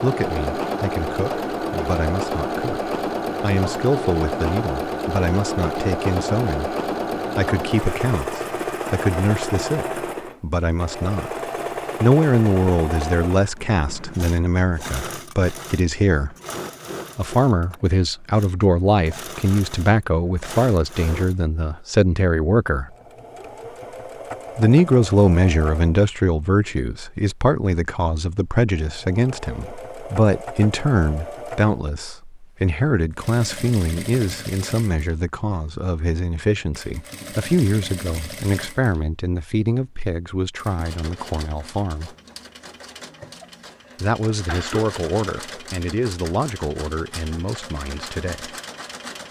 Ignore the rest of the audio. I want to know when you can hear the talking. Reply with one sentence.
You can hear the talking from 0.0 to 6.8 s, from 7.3 to 11.4 s, from 12.0 to 16.4 s, from 17.1 to 22.9 s, from 24.6 to 42.1 s and from 44.0 to 48.5 s.